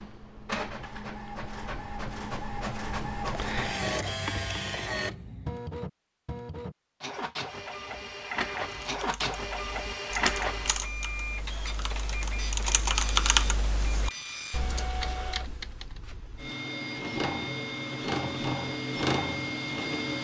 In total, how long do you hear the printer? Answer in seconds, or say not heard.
20 s.